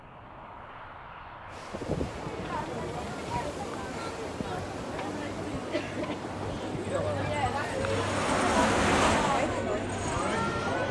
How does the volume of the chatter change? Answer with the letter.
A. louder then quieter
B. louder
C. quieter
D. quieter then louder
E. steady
B.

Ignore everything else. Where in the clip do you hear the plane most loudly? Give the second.
9 s.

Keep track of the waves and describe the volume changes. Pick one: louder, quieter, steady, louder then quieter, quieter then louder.
louder.